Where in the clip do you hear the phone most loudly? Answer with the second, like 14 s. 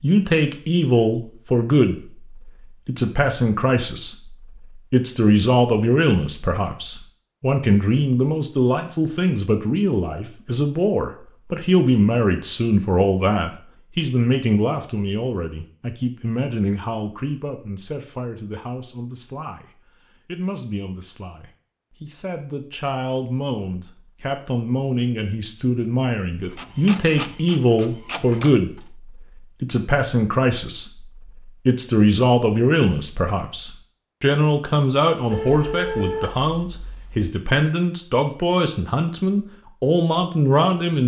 36 s.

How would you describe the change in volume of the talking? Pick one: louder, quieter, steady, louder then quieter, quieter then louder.
quieter then louder.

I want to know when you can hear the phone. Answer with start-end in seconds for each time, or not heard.
35.3-37.3.